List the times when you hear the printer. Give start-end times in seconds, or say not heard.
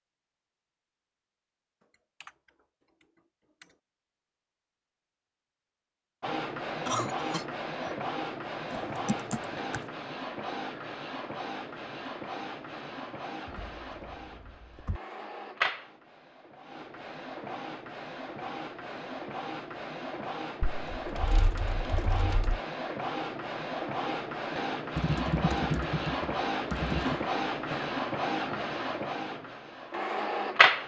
6.2-30.8.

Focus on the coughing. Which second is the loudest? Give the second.
7 s.